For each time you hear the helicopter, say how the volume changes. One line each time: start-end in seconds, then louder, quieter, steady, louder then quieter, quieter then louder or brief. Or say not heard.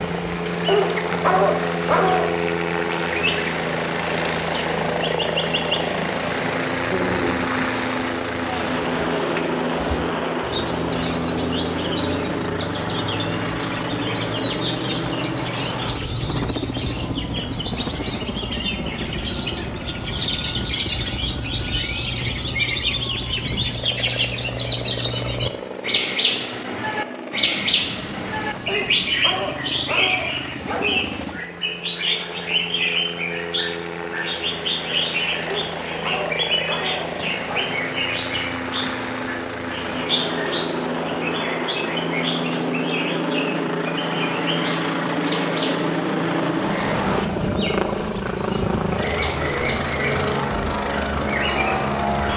0.0-52.3 quieter then louder.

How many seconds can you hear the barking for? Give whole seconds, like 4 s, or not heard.
6 s.